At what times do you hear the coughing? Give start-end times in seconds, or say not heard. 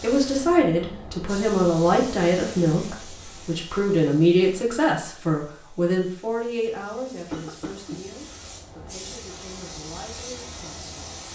7.3-8.1.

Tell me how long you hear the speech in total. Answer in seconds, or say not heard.
11 s.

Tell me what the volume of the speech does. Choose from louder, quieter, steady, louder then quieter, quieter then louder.
quieter.